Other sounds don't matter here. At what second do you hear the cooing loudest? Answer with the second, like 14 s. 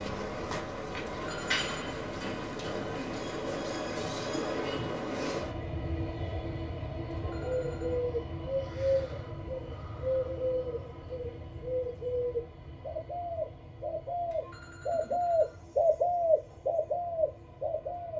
16 s.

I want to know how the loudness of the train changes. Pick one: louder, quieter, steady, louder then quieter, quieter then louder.
quieter.